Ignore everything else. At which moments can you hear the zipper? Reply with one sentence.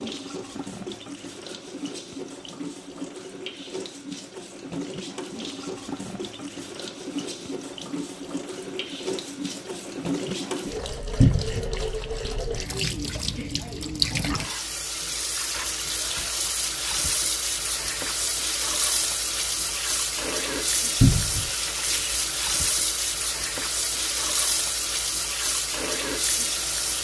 The zipper can't be heard in this clip.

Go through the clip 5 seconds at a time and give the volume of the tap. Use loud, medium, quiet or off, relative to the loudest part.
medium, medium, loud, loud, loud, loud.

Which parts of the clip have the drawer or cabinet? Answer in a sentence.
The drawer or cabinet can be heard from 11.2 to 11.7 s and from 21.0 to 21.5 s.